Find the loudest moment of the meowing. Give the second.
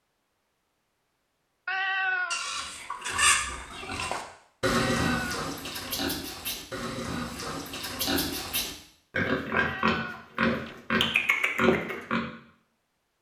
2 s.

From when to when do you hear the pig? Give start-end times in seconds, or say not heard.
2.3-12.2.